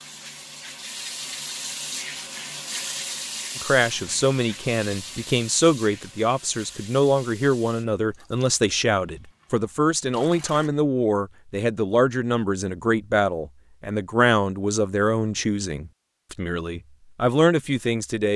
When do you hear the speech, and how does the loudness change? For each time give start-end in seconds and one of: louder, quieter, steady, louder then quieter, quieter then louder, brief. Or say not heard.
3.5-18.3 steady.